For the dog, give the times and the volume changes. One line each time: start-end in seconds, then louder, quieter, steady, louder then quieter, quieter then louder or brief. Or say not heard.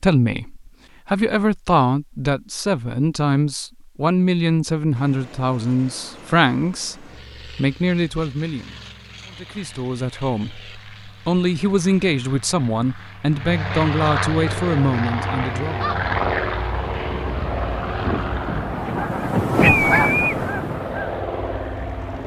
not heard.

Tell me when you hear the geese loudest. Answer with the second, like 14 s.
20 s.